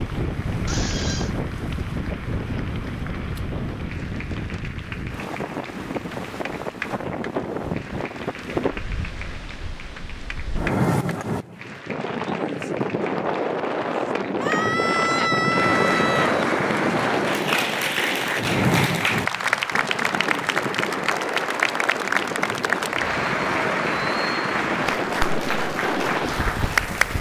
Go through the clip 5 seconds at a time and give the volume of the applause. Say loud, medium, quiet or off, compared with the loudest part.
quiet, quiet, quiet, loud, loud, loud.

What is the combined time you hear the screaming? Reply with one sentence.
You can hear the screaming for 3 seconds altogether.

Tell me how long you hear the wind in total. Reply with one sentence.
You can hear the wind for 27 seconds altogether.